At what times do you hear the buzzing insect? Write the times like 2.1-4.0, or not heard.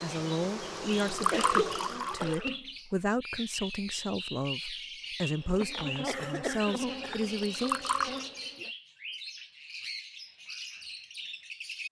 0.0-2.3, 5.3-8.7.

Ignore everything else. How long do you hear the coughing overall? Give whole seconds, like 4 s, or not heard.
3 s.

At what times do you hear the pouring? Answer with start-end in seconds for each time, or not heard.
1.0-2.5, 7.5-8.2.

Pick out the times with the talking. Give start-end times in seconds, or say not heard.
0.0-7.8.